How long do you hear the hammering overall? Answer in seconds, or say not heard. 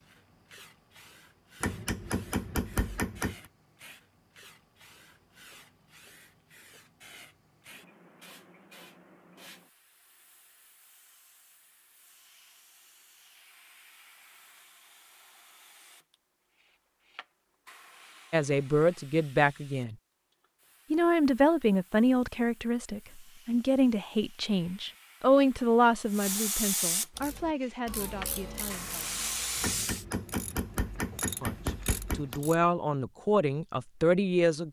5 s.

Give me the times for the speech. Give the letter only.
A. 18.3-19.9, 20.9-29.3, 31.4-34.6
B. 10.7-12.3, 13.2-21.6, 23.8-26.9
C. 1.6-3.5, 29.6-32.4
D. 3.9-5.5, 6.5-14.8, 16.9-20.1
A.